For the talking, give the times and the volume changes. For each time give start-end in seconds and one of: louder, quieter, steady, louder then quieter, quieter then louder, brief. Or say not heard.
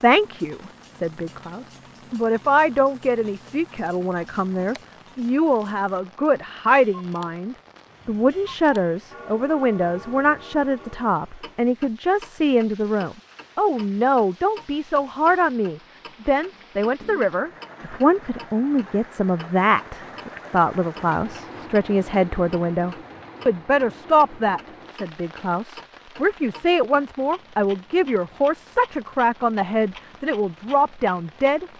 0.0-31.7 steady.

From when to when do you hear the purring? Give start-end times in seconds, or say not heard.
not heard.